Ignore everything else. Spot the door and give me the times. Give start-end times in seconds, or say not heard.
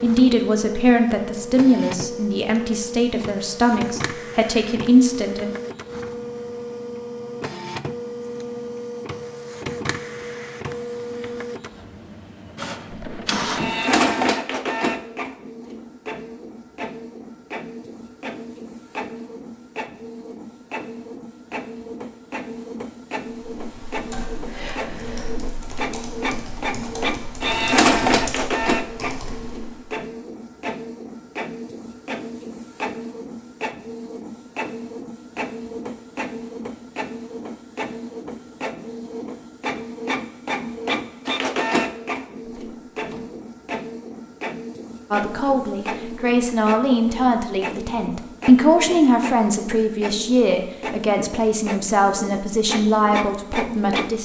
12.9-13.8, 42.5-43.4.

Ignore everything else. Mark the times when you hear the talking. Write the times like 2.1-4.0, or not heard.
0.0-5.5, 45.1-54.2.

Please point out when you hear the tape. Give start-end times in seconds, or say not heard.
not heard.